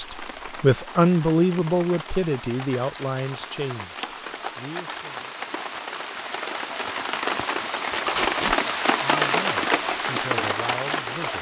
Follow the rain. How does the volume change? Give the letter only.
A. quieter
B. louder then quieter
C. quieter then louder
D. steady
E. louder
E.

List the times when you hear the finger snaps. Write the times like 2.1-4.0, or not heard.
not heard.